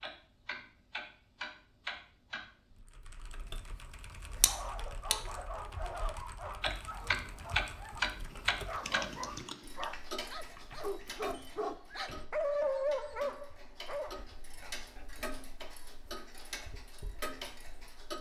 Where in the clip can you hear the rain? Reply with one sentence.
The rain can't be heard in this clip.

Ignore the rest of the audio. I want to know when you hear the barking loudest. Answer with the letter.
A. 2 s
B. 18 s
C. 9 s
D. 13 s
D.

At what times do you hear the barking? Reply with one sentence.
The barking can be heard from 4.3 to 14.8 s.